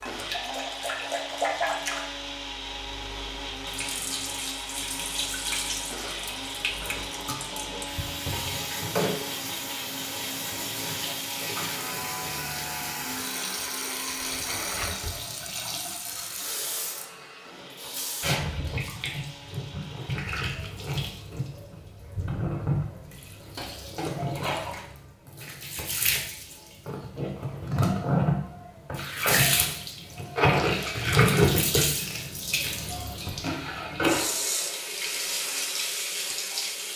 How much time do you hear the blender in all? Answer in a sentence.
You can hear the blender for 20 seconds altogether.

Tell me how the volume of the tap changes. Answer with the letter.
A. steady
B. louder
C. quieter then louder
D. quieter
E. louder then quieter
B.